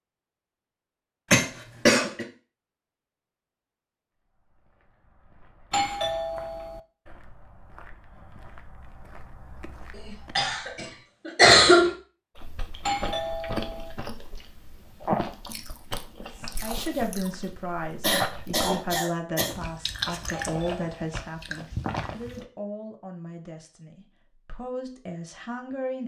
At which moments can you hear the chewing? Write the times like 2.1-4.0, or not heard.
12.3-22.4.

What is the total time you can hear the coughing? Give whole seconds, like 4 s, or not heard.
4 s.